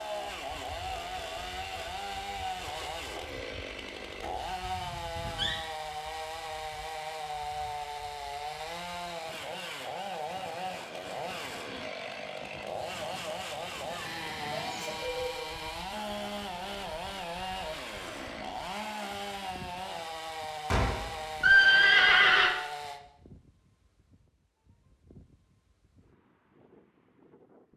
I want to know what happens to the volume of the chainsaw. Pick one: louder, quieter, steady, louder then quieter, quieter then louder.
steady.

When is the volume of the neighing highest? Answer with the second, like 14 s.
22 s.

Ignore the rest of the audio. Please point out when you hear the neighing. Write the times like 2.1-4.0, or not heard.
4.2-5.6, 13.9-15.5, 20.7-22.5.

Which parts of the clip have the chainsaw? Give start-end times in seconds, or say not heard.
0.0-23.0.